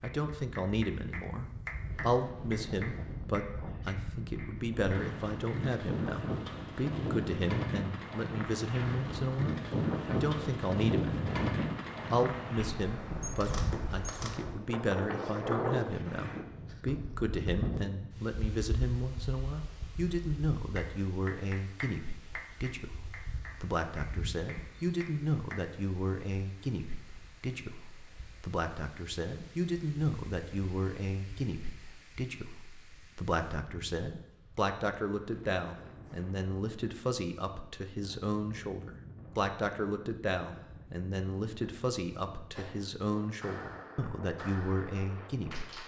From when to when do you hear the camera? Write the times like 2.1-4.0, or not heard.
13.2-14.4.